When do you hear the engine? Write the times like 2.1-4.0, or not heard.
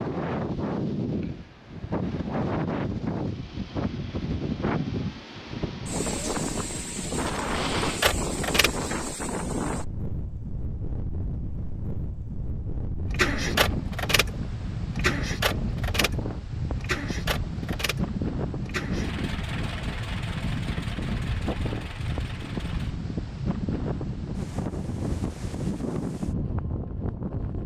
3.2-8.8, 13.1-23.1.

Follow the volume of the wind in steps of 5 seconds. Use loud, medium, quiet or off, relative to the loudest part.
loud, loud, medium, loud, loud, loud.